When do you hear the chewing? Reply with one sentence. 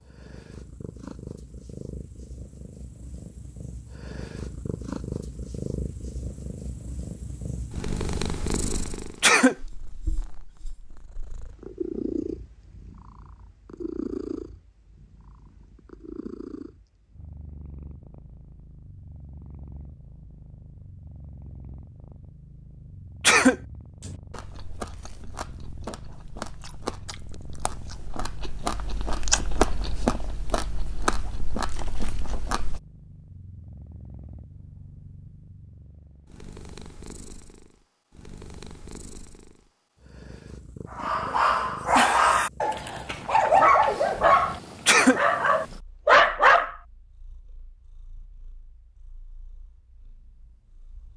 The chewing can be heard from 24.0 to 32.8 s.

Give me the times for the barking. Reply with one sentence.
The barking can be heard from 41.0 to 46.8 s.